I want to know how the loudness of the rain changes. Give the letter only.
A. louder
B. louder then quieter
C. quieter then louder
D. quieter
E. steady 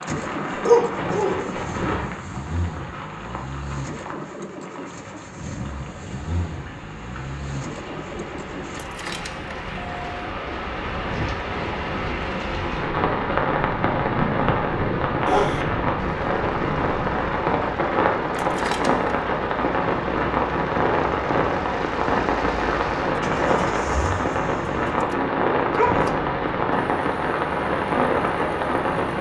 A.